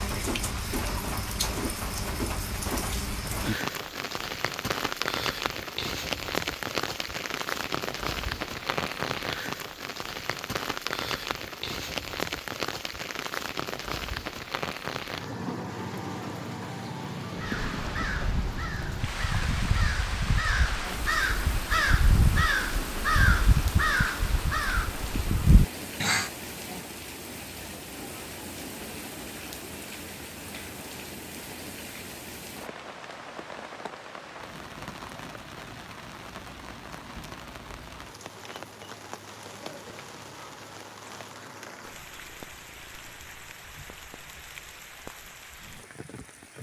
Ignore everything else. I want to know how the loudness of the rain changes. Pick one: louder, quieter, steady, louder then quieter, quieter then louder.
quieter.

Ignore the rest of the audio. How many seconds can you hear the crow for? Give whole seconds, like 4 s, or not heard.
9 s.